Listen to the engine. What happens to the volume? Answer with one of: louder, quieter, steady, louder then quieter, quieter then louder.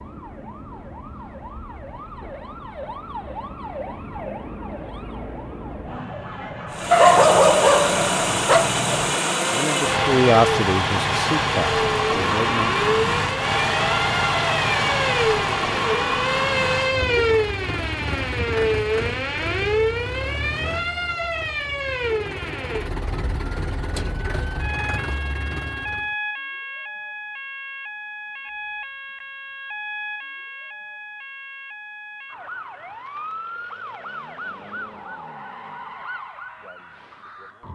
quieter.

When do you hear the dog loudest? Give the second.
7 s.